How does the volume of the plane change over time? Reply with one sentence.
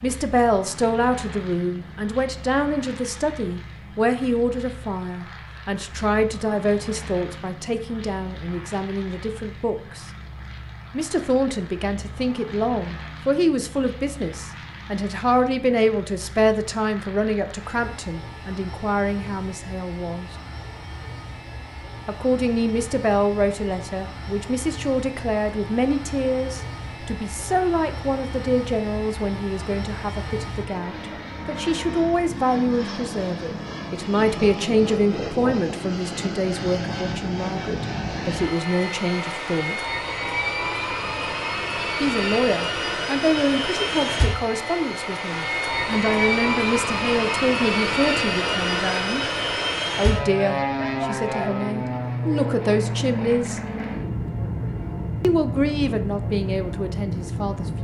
The volume of the plane goes up.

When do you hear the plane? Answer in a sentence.
The plane can be heard from 0.0 to 57.7 s.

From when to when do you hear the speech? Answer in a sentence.
You can hear the speech from 0.0 to 10.1 s, from 10.9 to 20.3 s, from 22.1 to 39.8 s, from 42.0 to 49.2 s, from 50.0 to 53.6 s and from 55.2 to 57.7 s.